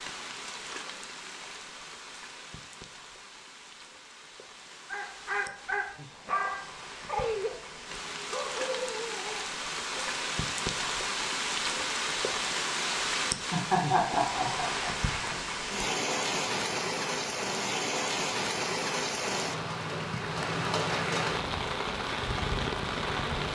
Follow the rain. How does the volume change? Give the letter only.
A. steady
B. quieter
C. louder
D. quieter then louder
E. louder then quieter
C.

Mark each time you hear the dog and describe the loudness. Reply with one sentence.
The dog can be heard from 4.9 to 10.2 s, getting quieter.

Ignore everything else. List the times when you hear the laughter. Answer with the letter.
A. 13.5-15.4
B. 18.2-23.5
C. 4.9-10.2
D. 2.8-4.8
A.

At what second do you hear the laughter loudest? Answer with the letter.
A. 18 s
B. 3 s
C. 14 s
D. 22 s
C.